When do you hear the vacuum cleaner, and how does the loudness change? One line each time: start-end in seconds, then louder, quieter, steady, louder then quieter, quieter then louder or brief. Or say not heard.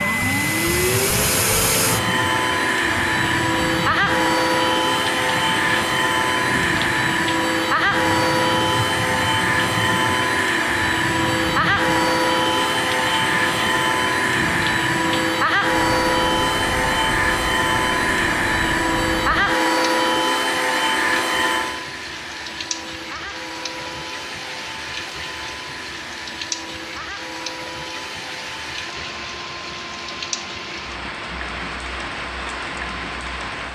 0.0-33.7 quieter.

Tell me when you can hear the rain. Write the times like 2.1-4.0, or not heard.
0.0-33.7.